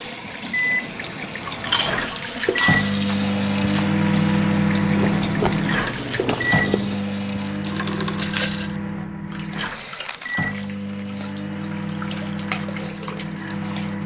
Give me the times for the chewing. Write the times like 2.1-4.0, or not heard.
1.4-2.9, 5.0-7.0, 10.0-11.1.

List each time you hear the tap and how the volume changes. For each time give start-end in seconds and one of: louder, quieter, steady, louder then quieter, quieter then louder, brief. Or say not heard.
0.0-14.0 quieter.